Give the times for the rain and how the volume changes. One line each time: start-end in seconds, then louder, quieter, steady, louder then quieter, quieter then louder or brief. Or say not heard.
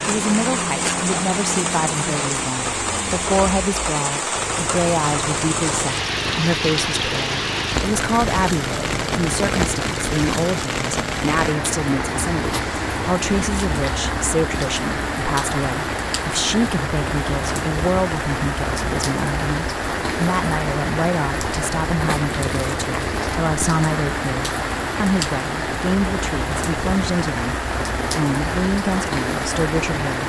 0.0-30.2 steady.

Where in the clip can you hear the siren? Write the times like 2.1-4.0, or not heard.
not heard.